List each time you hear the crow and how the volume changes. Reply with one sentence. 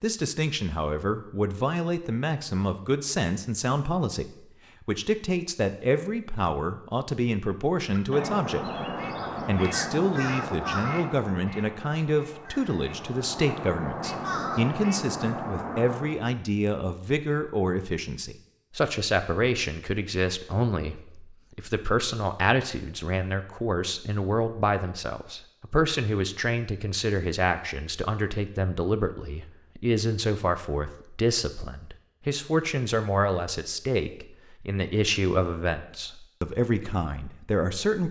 The crow can be heard from 7.8 to 16.2 s, getting quieter then louder.